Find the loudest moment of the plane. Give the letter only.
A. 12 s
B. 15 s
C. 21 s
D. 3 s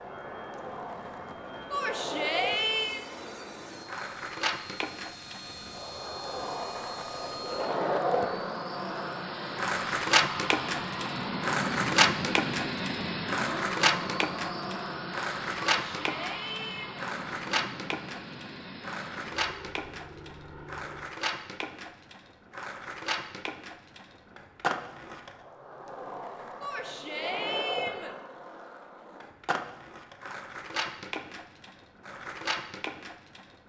A.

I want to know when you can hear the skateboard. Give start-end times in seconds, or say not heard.
0.0-33.6.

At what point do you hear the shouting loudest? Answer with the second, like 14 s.
3 s.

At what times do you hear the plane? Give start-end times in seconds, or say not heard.
0.0-21.1.